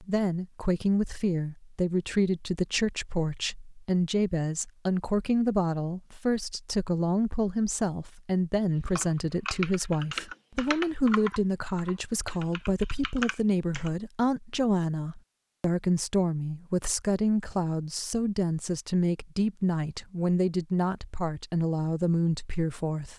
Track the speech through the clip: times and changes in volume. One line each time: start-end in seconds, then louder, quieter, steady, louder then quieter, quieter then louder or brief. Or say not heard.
0.0-23.1 steady.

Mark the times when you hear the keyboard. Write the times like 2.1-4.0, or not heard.
8.9-13.9.